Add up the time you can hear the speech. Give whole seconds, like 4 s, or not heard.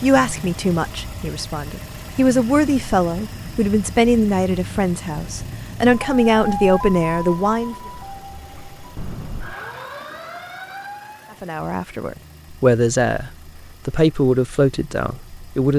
12 s.